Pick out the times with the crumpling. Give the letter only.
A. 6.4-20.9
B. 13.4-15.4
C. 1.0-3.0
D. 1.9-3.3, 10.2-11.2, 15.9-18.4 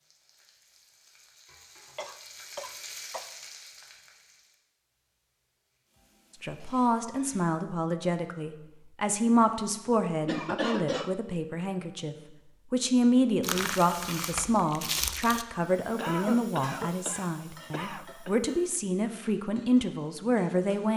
B.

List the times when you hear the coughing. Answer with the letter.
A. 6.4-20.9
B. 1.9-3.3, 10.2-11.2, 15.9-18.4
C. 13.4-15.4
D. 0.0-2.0
B.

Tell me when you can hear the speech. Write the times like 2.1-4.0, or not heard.
6.4-20.9.